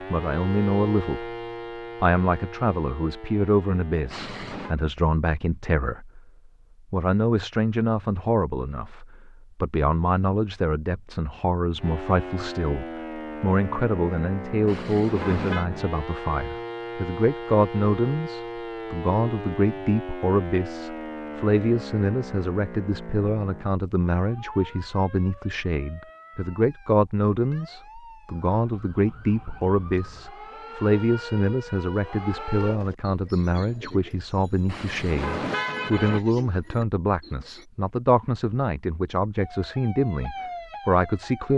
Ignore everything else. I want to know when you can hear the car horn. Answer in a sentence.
The car horn can be heard from 4.1 to 4.8 s, from 14.7 to 15.7 s and from 34.6 to 36.2 s.